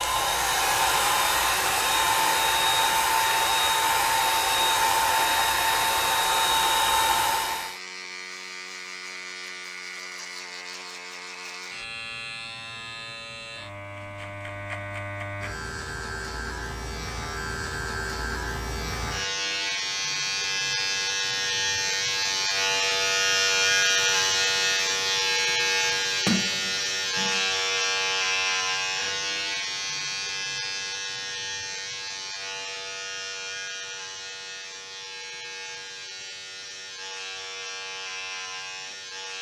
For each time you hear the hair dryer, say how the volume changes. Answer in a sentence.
The hair dryer can be heard from 0.0 to 7.8 s, at a steady volume.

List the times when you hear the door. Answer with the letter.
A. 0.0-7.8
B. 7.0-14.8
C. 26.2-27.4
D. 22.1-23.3
C.